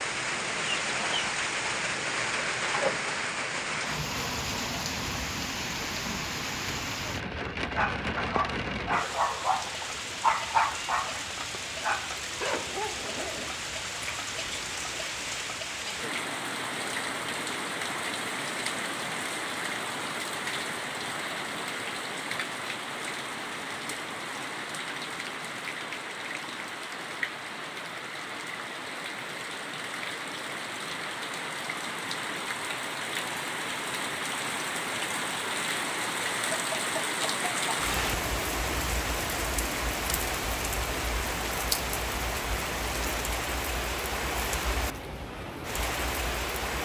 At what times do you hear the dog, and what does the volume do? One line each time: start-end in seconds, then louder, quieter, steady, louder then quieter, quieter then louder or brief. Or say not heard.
7.5-13.4 louder then quieter.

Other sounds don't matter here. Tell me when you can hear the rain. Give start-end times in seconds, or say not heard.
0.0-46.7.